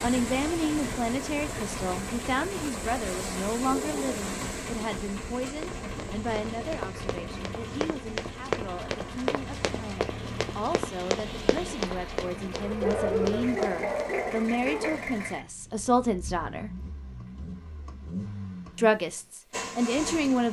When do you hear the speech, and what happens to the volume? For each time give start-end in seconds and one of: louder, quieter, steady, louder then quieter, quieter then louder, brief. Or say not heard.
0.0-16.7 quieter then louder
18.8-20.4 brief.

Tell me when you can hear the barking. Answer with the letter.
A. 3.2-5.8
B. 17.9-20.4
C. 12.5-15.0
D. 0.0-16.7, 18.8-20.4
C.